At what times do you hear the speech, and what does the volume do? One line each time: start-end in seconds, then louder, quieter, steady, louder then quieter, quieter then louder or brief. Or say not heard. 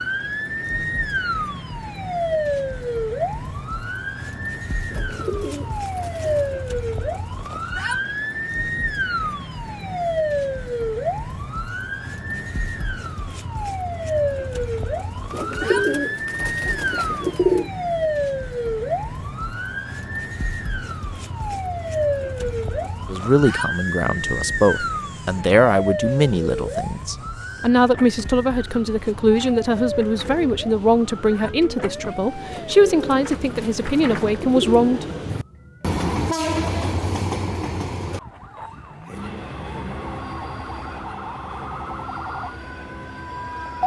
23.1-35.1 steady.